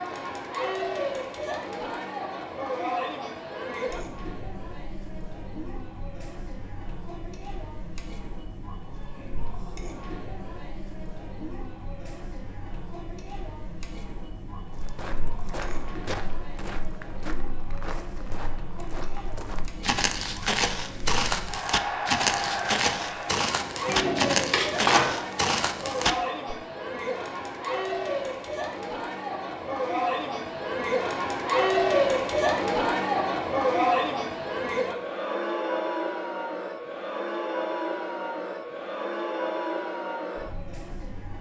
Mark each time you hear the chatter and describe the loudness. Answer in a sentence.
The chatter can be heard from 0.0 to 41.3 s, getting quieter then louder.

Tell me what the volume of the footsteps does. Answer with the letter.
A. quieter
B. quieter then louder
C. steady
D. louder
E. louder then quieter
D.